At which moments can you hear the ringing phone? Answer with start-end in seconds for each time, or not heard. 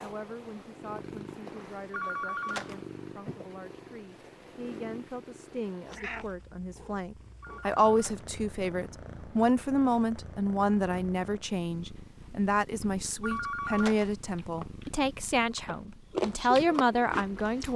1.9-2.9, 7.4-8.3, 13.2-14.2.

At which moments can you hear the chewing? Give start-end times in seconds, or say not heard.
14.3-17.7.